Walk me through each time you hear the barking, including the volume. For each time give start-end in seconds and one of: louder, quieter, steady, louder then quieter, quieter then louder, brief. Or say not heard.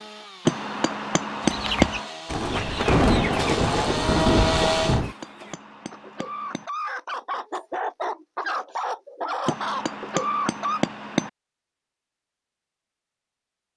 not heard.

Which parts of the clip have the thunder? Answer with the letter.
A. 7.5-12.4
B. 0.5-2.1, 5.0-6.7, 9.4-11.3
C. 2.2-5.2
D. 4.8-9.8
C.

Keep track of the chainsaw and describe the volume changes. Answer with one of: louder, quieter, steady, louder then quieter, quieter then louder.
louder.